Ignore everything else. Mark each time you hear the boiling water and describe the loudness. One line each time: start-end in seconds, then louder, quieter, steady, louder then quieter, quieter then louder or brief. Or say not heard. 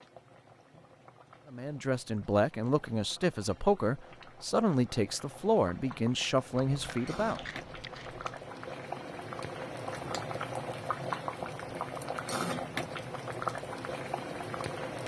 0.0-15.0 louder.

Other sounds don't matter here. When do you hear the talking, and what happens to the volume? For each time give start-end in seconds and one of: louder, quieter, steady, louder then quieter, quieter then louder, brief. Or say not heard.
1.5-7.4 steady.